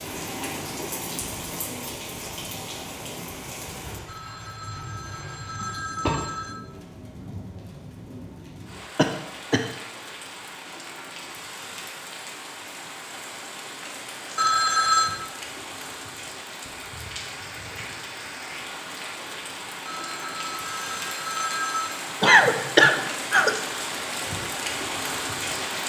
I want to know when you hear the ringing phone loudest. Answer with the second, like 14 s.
15 s.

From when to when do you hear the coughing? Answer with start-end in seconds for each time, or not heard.
5.6-6.2, 8.9-9.7, 22.2-23.6.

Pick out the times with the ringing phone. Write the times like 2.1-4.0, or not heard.
4.0-6.6, 14.3-15.1, 19.9-22.0.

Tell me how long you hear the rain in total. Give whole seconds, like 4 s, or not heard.
26 s.